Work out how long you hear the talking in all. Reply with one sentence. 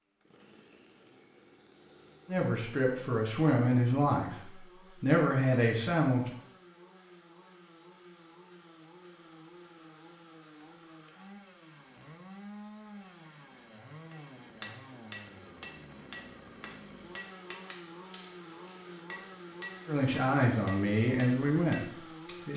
You can hear the talking for 7 seconds altogether.